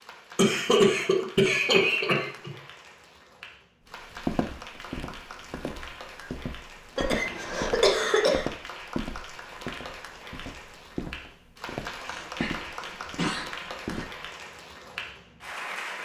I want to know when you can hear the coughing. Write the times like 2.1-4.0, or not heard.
0.3-2.5, 7.0-8.4, 12.1-14.1.